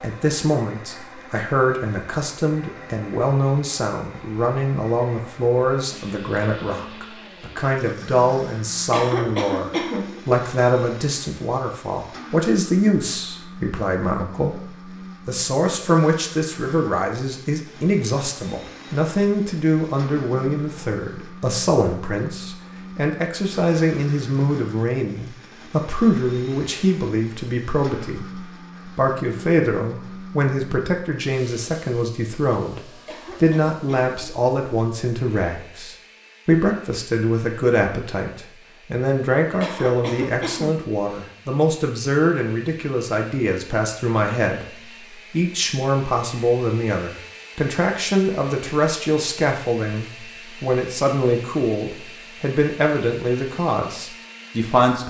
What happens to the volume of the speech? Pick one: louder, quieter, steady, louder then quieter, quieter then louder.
steady.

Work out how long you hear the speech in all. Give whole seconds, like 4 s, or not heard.
55 s.